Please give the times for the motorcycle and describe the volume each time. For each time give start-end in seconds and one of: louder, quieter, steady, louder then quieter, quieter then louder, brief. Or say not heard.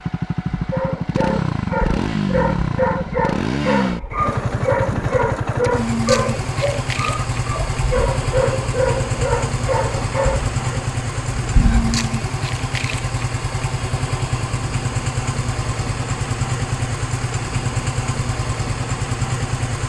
0.0-19.8 steady.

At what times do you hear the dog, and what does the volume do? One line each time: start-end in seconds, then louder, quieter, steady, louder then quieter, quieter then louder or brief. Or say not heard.
0.6-11.9 steady.